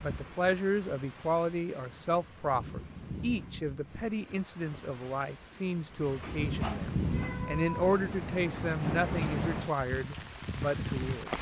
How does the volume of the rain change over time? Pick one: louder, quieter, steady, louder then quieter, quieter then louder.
louder.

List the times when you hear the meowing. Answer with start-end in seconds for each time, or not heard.
6.2-7.8.